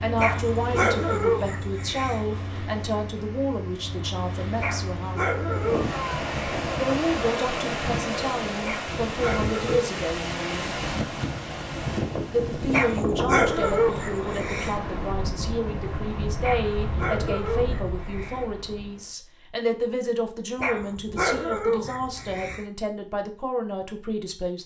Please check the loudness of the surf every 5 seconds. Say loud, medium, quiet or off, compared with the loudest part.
medium, loud, loud, medium, off.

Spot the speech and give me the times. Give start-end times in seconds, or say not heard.
0.0-5.3, 6.8-10.8, 12.3-24.6.